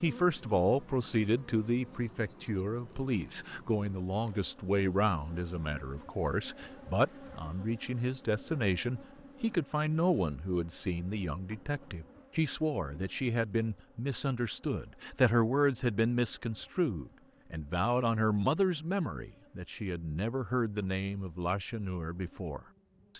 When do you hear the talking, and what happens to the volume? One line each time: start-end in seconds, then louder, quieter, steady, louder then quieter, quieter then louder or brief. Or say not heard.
0.0-23.1 steady.